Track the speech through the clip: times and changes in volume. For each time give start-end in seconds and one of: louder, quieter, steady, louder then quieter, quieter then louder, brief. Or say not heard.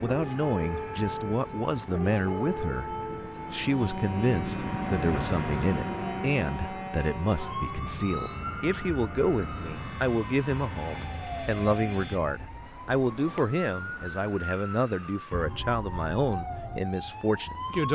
0.0-17.9 steady.